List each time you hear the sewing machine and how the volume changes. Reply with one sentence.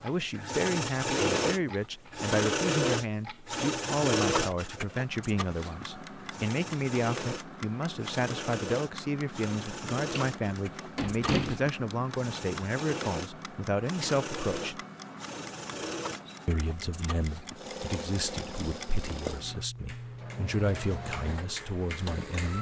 You can hear the sewing machine from 0.0 to 22.5 s, getting quieter.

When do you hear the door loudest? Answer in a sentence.
The volume of the door peaks at 11 seconds.